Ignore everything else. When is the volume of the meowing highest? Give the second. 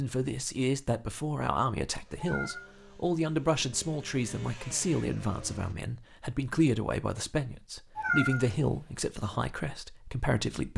8 s.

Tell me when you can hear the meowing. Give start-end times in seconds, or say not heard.
2.1-2.7, 8.0-8.8.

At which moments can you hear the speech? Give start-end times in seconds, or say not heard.
0.0-10.7.